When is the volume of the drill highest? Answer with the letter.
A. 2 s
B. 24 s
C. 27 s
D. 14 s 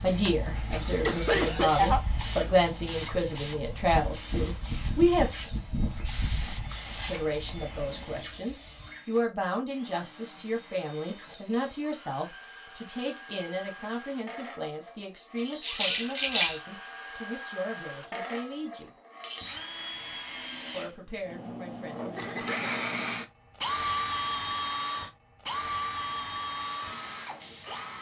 B.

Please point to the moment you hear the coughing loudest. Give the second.
2 s.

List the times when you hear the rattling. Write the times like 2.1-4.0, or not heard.
15.6-16.6.